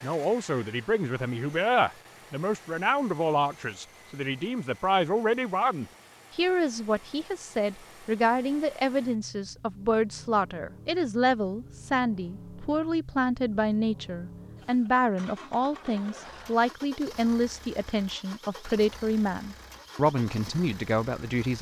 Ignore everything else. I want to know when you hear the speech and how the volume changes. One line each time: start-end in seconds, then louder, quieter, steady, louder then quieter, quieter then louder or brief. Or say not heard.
0.0-21.5 steady.